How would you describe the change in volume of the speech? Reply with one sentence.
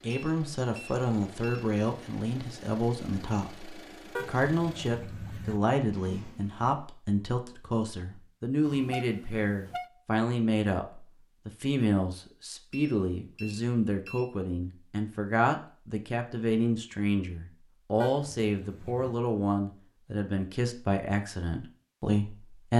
The volume of the speech stays about the same.